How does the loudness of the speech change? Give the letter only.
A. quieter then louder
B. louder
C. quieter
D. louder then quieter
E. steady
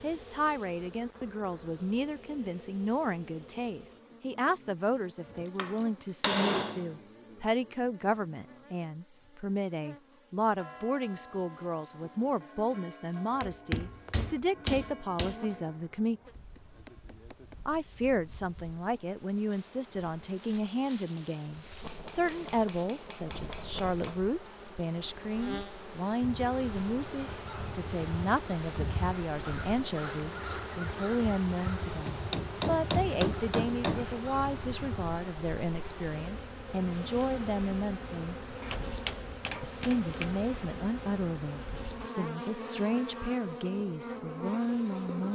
E.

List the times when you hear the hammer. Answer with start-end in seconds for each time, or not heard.
5.5-7.0, 13.4-15.3, 21.8-24.2, 32.0-34.0, 38.6-40.4.